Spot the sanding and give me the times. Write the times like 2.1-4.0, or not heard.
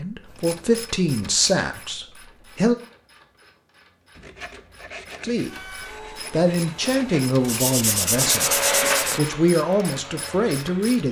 4.1-9.2.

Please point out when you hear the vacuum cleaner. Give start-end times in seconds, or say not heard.
5.5-11.0.